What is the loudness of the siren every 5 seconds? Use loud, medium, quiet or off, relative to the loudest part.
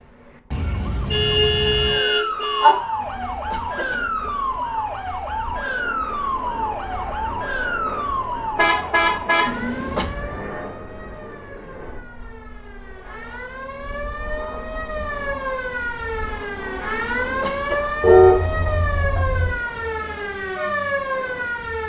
loud, loud, medium, loud, loud.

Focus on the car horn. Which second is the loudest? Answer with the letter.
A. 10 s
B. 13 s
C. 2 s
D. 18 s
D.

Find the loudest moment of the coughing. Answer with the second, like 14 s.
10 s.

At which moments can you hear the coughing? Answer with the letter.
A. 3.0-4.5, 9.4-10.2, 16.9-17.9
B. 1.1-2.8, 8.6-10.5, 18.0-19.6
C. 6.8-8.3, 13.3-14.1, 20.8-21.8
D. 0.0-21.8
A.